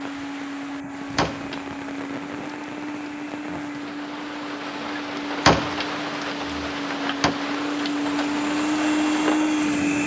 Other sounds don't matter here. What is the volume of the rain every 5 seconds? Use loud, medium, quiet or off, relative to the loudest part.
medium, loud.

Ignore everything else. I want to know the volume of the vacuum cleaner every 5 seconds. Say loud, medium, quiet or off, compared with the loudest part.
medium, loud.